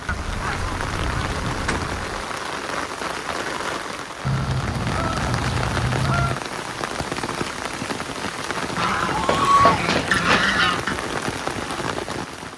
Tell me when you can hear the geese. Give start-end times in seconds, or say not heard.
0.1-2.2, 4.2-6.4, 8.8-10.9.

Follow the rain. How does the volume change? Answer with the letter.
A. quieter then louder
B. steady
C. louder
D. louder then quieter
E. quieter
B.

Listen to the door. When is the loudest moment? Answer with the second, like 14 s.
10 s.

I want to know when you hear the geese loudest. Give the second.
10 s.